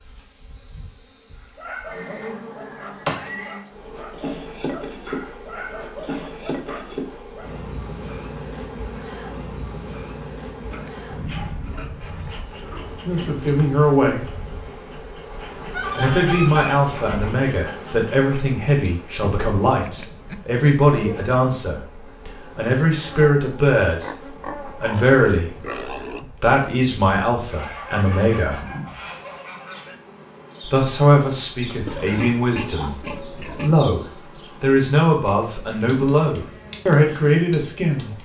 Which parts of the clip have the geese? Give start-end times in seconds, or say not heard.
15.6-17.3, 27.5-29.9.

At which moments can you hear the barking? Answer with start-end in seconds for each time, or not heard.
1.4-7.7.